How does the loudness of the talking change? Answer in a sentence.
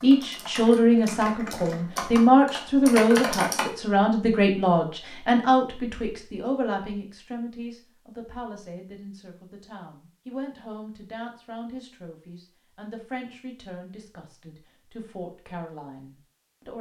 The volume of the talking goes down.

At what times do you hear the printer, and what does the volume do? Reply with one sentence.
You can't hear the printer here.